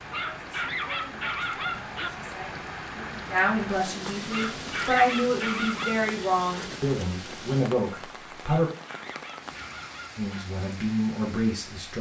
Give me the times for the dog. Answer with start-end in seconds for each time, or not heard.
0.1-2.1, 4.3-6.0, 8.7-10.4.